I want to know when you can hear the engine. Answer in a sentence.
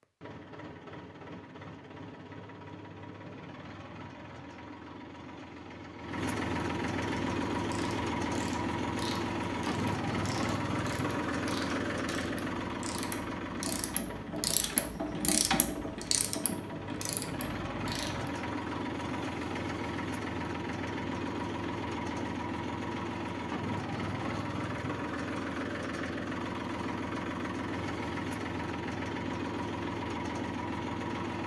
The engine can be heard from 0.0 to 31.4 s.